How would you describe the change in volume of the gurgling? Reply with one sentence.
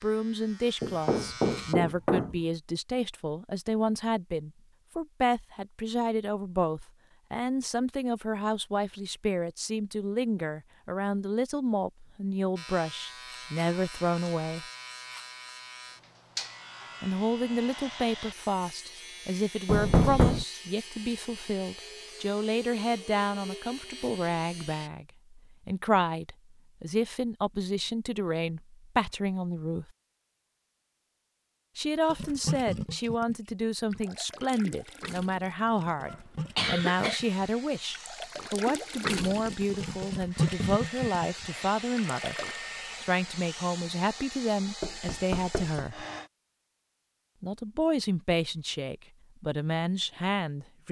The volume of the gurgling goes down, then up.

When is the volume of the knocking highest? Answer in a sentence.
The loudest moment of the knocking is at 20 seconds.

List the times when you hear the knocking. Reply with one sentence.
The knocking can be heard from 0.8 to 2.4 s, from 19.6 to 20.4 s and from 44.8 to 45.9 s.